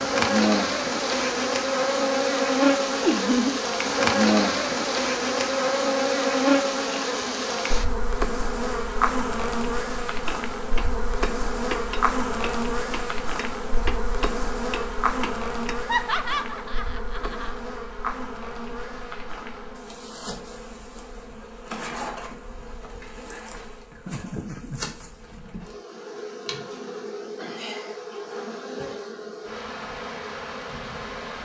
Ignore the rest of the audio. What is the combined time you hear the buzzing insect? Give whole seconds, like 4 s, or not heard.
31 s.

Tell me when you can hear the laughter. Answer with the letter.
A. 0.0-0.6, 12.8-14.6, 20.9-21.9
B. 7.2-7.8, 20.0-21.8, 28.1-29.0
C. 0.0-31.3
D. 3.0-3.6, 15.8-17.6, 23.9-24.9
D.